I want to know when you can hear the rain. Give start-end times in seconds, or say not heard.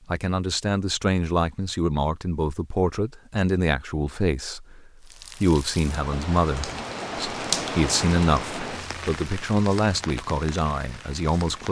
5.0-11.6.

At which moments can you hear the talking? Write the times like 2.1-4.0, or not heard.
0.1-11.6.